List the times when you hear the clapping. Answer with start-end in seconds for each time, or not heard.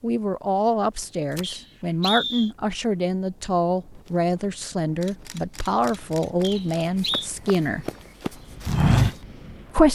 not heard.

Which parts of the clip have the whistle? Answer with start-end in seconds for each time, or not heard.
1.4-2.5, 6.4-7.3.